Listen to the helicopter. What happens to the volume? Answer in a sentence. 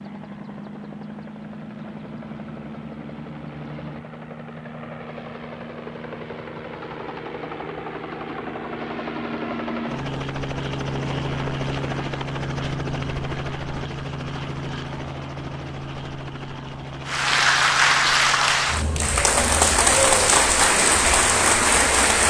The volume of the helicopter goes up, then down.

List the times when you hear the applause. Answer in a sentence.
The applause can be heard from 17.1 to 22.2 s.